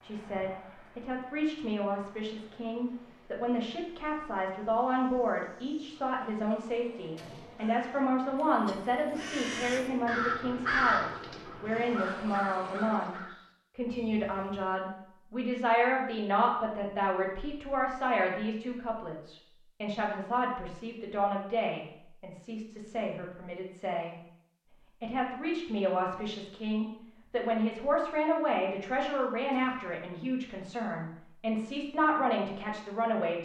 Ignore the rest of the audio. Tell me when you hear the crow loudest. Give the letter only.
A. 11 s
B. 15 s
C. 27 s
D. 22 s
A.